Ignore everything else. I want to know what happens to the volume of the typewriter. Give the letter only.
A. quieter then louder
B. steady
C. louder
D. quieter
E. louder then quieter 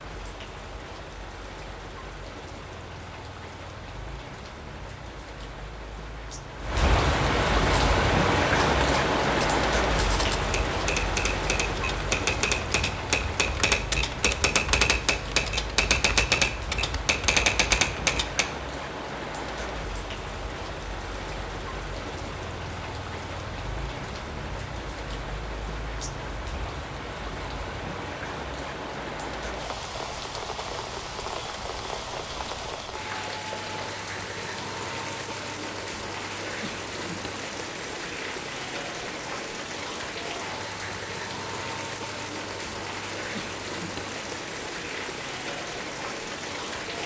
C.